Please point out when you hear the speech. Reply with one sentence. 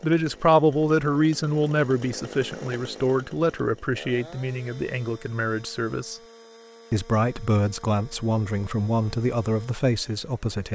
You can hear the speech from 0.0 to 6.2 s and from 6.9 to 10.6 s.